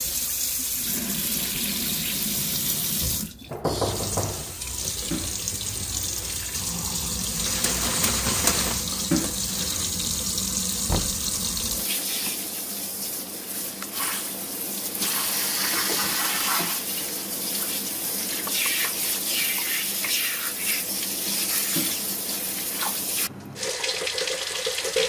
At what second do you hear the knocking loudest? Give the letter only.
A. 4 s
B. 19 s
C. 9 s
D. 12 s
A.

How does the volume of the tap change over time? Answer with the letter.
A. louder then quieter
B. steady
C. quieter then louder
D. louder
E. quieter
B.